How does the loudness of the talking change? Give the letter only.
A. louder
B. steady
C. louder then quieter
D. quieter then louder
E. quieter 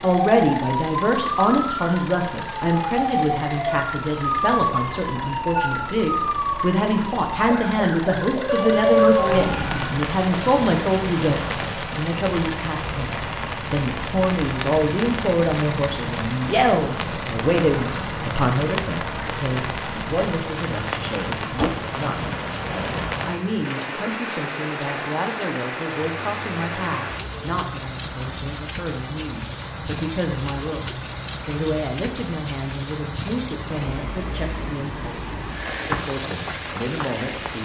E.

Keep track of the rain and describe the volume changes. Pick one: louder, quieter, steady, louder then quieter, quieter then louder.
steady.